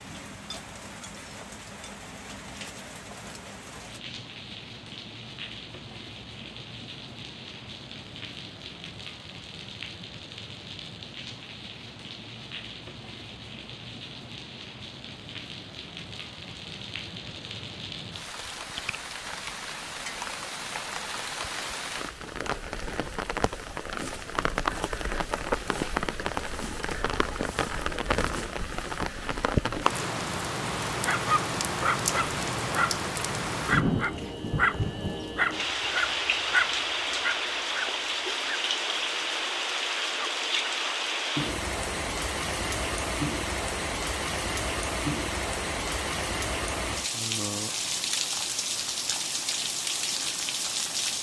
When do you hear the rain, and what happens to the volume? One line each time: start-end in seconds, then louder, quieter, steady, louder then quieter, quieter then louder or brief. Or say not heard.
0.0-51.1 louder.